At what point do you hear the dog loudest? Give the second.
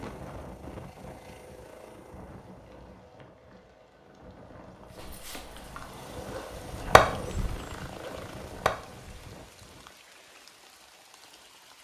7 s.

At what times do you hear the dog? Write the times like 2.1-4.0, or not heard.
4.8-9.2.